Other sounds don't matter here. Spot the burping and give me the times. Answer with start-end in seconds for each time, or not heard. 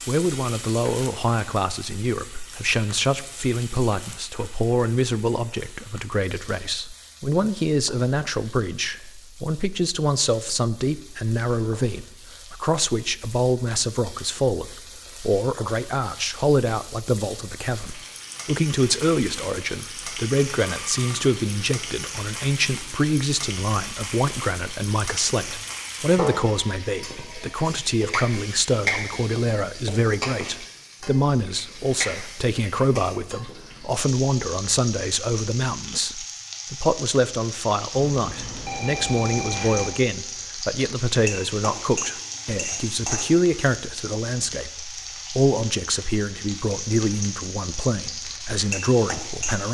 not heard.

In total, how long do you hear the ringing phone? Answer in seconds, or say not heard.
3 s.